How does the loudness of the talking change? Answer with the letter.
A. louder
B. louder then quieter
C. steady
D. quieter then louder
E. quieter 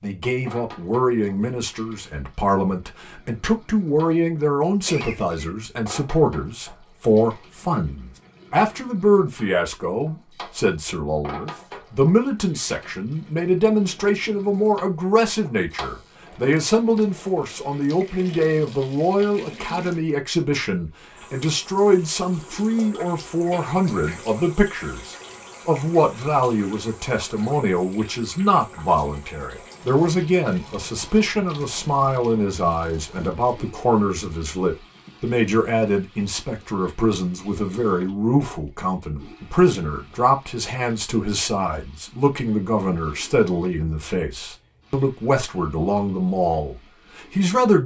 C.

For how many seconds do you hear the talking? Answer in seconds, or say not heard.
48 s.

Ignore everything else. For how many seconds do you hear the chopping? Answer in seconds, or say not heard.
not heard.